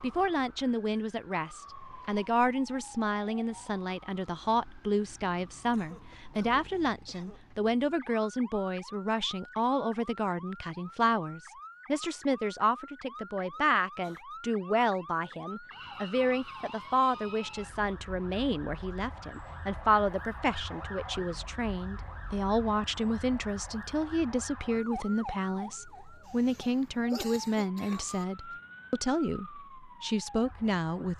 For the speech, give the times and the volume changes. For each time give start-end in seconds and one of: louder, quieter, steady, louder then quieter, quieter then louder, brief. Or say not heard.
0.0-31.1 steady.